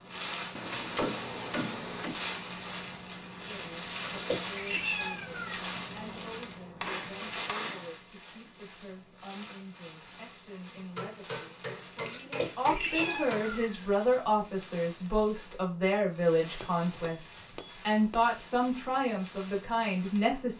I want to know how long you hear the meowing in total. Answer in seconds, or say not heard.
4 s.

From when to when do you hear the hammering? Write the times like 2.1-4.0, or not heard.
0.6-2.2, 6.8-7.9, 10.8-13.6, 16.6-18.3.